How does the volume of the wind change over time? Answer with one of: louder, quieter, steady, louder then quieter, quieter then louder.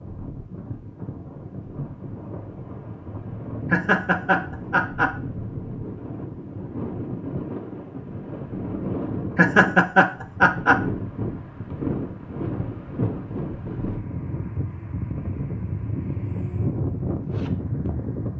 louder.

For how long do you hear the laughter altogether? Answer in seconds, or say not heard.
3 s.